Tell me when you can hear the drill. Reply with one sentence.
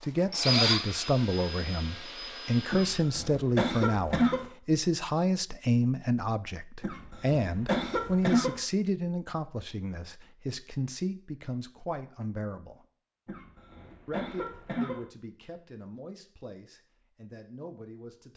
The drill can be heard from 0.3 to 3.0 s.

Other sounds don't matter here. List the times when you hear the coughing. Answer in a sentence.
You can hear the coughing from 2.7 to 4.5 s, from 6.8 to 8.6 s and from 13.2 to 15.1 s.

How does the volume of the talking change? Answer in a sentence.
The volume of the talking goes down.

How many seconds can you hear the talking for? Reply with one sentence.
The talking can be heard for 17 seconds in total.